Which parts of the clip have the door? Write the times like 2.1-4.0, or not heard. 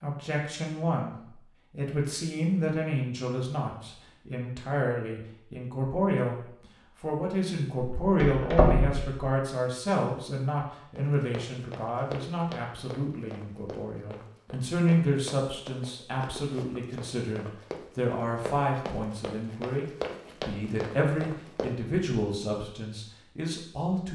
7.8-9.2.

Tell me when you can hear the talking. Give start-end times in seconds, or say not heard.
0.0-24.0.